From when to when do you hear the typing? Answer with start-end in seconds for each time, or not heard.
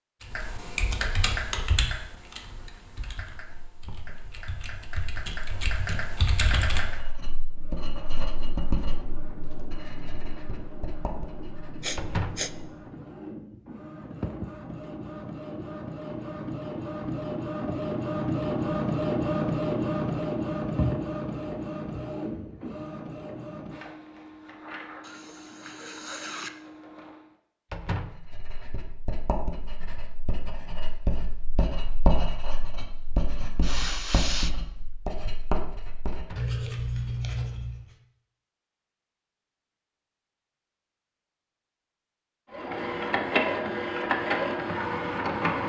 0.2-7.0.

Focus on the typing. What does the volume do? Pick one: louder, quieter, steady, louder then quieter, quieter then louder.
quieter then louder.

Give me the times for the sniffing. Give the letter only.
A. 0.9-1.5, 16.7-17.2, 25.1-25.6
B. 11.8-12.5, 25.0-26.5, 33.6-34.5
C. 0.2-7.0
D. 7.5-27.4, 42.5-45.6
B.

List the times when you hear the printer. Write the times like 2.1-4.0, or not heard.
7.5-27.4, 42.5-45.6.